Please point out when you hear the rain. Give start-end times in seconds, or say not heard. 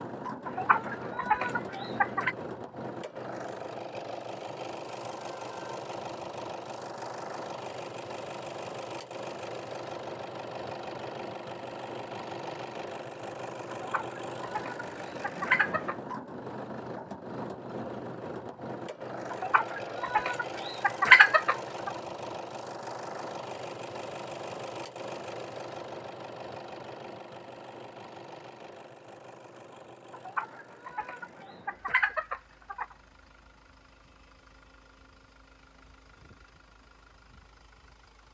not heard.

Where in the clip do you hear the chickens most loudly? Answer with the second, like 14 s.
21 s.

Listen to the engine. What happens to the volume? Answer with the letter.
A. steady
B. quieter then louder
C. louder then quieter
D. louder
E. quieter
E.